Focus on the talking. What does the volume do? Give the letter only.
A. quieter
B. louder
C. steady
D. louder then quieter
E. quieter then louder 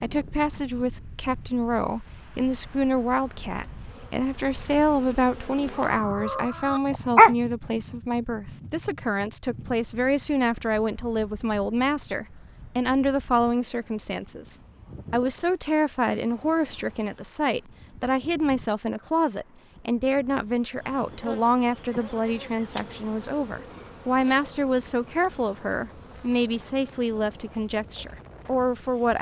C.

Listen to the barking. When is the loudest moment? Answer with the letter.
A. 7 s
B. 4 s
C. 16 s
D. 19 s
A.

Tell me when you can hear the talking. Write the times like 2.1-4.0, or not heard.
0.0-29.1.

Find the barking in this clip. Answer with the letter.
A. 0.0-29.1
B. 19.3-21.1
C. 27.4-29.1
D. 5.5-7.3
D.